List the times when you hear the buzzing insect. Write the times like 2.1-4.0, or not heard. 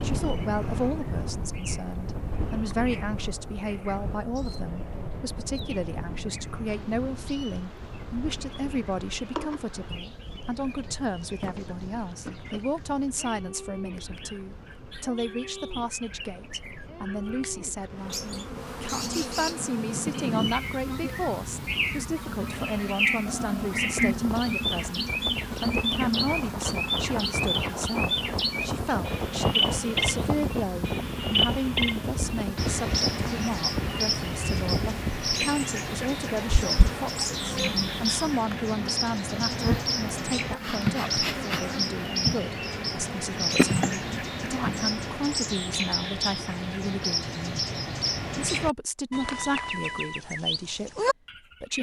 6.7-45.3.